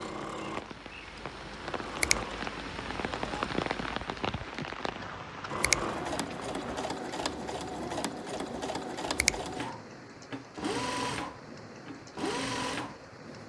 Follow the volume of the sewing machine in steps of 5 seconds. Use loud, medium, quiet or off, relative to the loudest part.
medium, loud, loud.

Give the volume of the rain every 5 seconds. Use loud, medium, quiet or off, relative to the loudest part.
loud, medium, medium.